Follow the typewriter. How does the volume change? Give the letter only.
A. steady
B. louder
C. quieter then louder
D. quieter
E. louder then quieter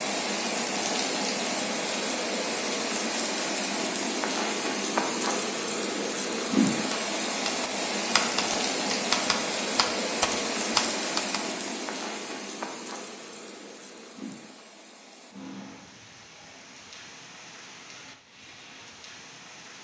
B.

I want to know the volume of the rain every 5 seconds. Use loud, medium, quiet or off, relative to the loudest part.
loud, loud, medium, quiet.